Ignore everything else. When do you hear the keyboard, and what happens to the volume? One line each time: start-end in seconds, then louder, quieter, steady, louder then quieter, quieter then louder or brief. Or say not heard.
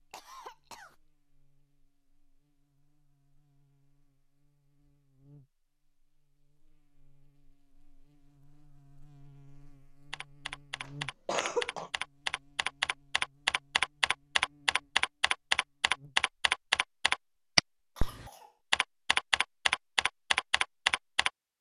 10.1-21.3 louder.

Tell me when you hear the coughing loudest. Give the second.
11 s.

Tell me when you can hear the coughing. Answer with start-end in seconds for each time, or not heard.
0.1-0.9, 10.8-11.9, 17.9-18.6.